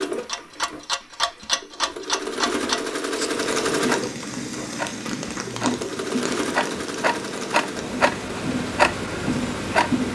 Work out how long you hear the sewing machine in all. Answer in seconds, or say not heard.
10 s.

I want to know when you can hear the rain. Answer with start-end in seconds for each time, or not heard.
3.3-10.1.